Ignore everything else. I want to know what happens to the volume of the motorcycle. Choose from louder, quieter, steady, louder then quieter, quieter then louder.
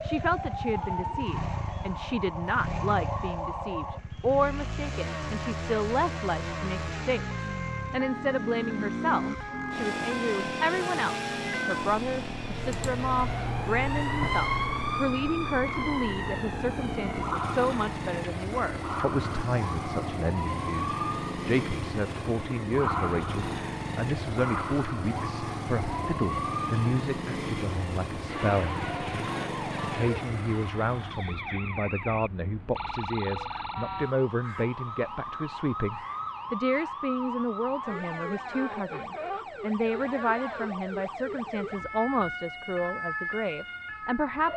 steady.